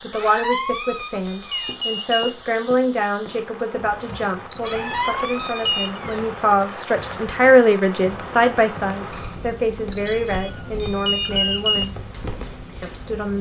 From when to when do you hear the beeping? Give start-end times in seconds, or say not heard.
0.3-2.3, 4.5-6.0, 9.9-11.8.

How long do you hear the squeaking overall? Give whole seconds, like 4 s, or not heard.
5 s.